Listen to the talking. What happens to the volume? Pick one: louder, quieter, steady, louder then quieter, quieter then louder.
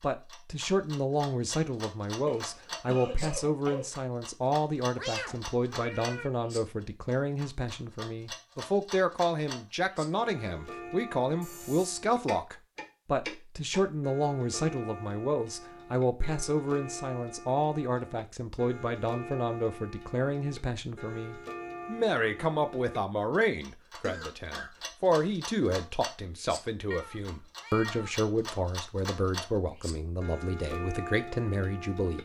steady.